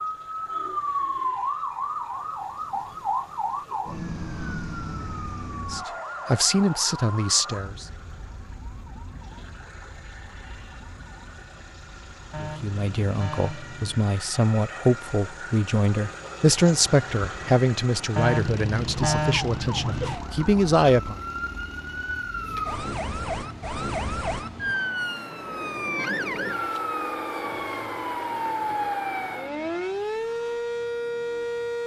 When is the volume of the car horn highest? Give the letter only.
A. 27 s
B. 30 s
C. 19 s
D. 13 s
C.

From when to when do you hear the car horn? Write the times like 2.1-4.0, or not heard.
12.3-14.2, 18.1-20.1.